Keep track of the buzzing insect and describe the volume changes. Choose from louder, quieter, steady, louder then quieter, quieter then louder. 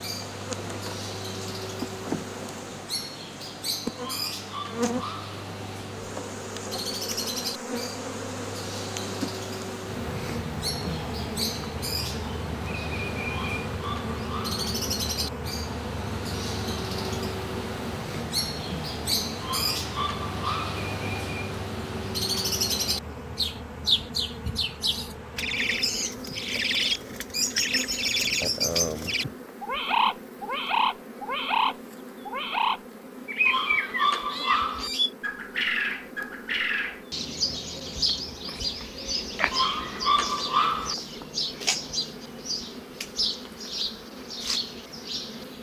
quieter.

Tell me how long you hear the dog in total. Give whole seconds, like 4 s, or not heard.
7 s.